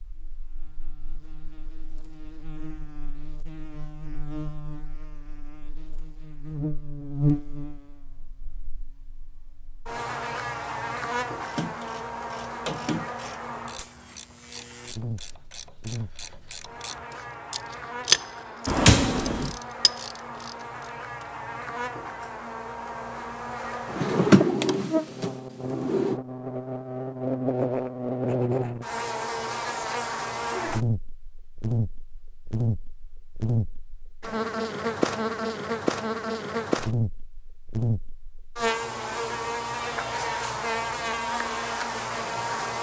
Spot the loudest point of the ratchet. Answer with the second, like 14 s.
18 s.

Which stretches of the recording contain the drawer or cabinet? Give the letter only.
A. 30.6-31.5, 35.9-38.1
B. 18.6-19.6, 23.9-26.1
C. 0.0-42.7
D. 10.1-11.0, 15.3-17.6
B.